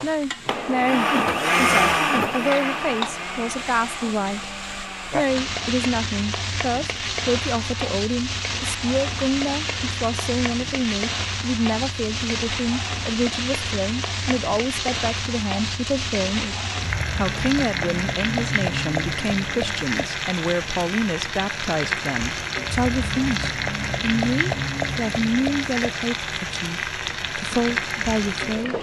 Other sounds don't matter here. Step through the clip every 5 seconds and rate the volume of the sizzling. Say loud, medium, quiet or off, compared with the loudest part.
medium, loud, loud, loud, loud, loud.